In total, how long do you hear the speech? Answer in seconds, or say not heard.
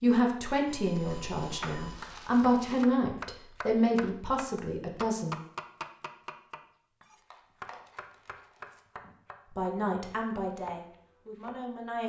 8 s.